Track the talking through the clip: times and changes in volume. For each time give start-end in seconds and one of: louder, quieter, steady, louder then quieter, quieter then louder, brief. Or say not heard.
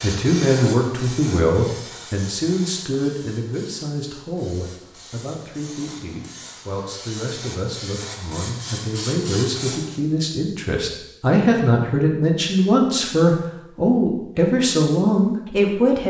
0.0-16.0 quieter then louder.